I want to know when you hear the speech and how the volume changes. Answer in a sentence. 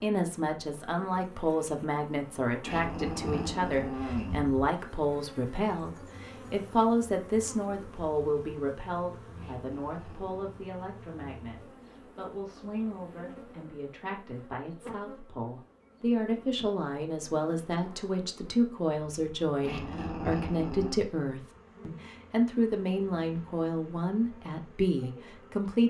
You can hear the speech from 0.0 to 25.8 s, getting quieter then louder.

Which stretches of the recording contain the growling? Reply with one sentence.
The growling can be heard from 2.6 to 4.7 s, from 9.3 to 10.7 s and from 19.6 to 21.1 s.